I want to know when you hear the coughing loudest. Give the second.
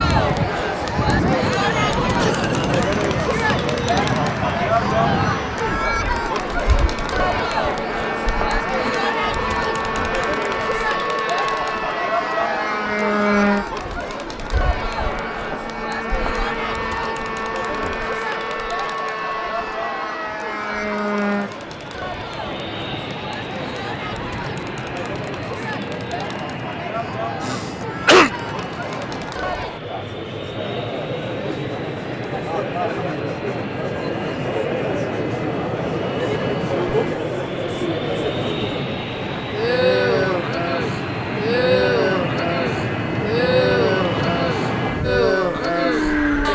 28 s.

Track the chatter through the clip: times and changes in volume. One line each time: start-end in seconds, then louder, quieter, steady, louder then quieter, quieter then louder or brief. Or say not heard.
0.0-46.4 quieter then louder.